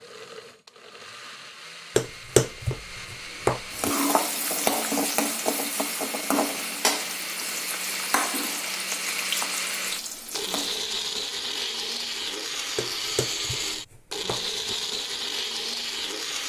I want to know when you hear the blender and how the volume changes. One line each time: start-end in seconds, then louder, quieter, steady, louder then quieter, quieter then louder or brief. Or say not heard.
0.0-16.4 louder.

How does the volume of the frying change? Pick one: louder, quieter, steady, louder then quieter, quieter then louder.
quieter.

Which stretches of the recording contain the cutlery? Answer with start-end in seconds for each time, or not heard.
not heard.